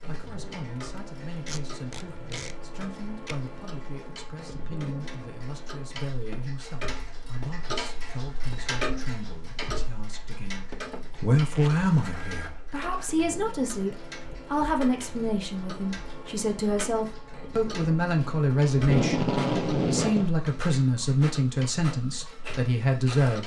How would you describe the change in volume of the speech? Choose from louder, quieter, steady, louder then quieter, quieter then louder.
louder.